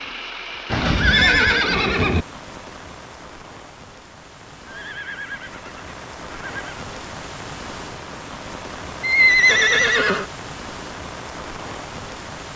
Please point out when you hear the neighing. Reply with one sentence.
The neighing can be heard from 0.7 to 2.2 s, from 4.7 to 6.8 s and from 9.0 to 10.2 s.